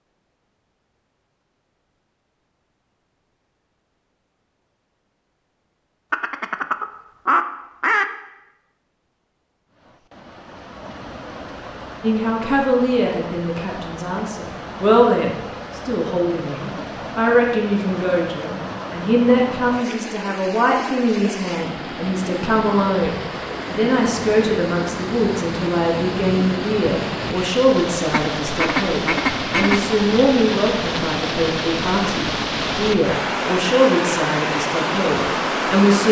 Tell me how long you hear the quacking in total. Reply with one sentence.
The quacking can be heard for 4 seconds in total.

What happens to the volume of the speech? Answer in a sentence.
The volume of the speech stays about the same.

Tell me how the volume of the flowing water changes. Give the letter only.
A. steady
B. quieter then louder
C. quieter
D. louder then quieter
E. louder
E.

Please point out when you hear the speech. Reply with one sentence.
The speech can be heard from 12.0 to 36.0 s.